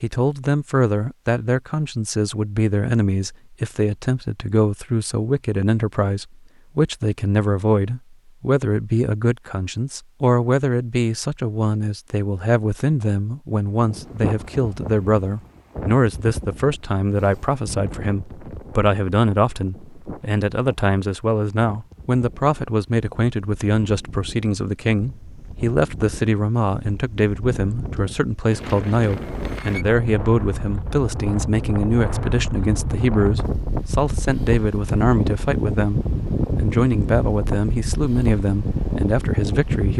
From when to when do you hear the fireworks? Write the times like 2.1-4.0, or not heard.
not heard.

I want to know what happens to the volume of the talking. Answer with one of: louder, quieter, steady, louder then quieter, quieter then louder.
steady.